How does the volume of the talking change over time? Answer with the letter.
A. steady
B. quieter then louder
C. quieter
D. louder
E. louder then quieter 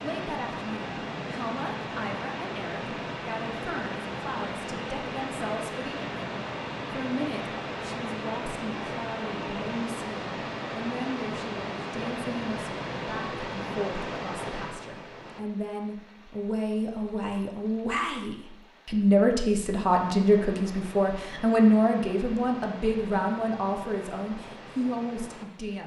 D.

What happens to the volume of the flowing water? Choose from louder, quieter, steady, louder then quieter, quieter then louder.
quieter then louder.